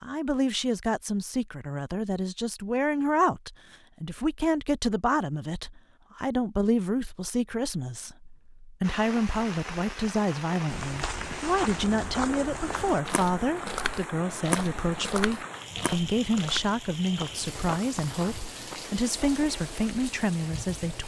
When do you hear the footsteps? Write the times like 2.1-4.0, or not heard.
10.7-20.1.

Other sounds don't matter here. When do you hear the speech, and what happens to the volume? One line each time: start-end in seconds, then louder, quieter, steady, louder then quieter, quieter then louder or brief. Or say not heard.
0.0-21.0 steady.